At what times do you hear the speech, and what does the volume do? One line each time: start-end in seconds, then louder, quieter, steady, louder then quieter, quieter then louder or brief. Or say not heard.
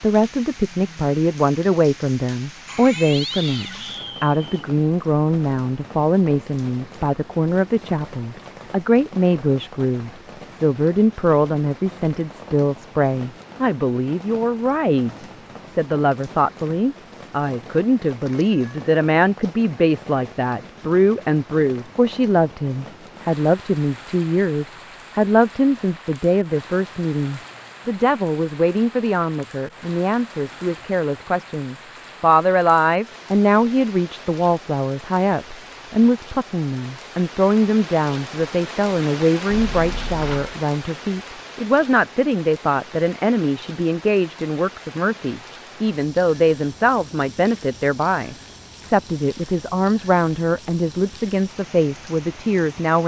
0.0-53.0 steady.